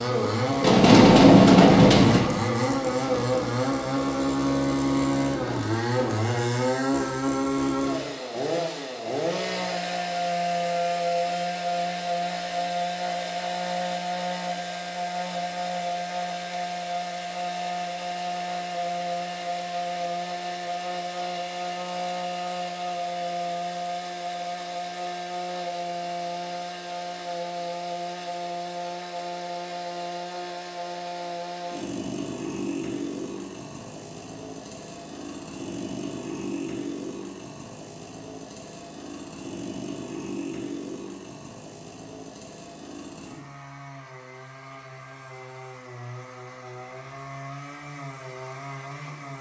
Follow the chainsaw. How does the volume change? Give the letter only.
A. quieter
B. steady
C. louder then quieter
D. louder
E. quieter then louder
A.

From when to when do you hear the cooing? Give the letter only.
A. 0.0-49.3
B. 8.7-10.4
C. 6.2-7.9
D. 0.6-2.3
D.